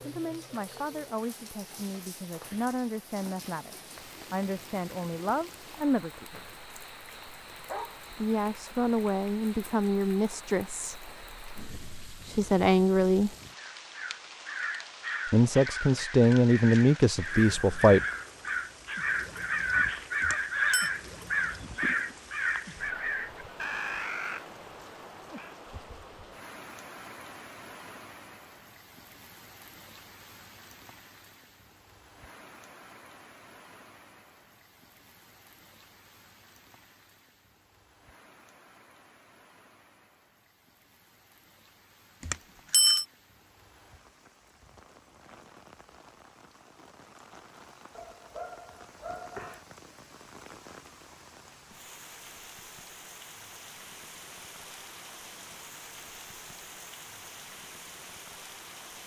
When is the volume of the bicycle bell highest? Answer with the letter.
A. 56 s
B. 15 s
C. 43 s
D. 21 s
C.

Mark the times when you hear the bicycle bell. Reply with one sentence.
You can hear the bicycle bell from 20.2 to 20.9 s and from 42.2 to 43.0 s.